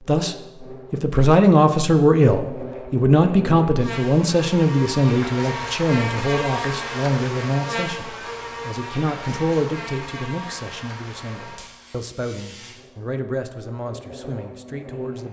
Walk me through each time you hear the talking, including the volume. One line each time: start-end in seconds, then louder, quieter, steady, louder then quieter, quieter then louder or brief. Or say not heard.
0.1-15.2 quieter.